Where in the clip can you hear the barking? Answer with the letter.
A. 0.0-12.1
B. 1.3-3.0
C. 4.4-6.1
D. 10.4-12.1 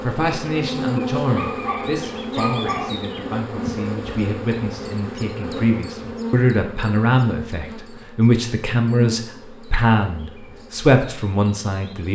B.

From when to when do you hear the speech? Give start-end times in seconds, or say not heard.
0.0-12.1.